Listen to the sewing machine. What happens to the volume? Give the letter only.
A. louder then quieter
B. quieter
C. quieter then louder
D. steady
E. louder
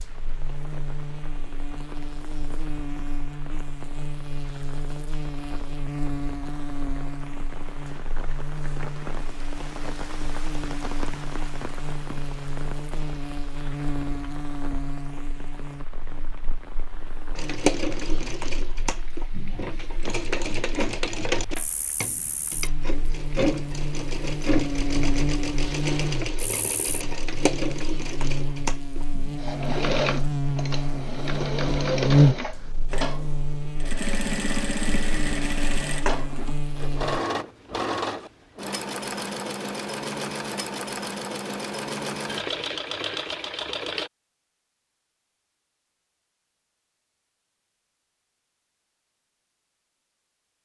D.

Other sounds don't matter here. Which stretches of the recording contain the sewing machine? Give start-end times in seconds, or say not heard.
17.4-44.1.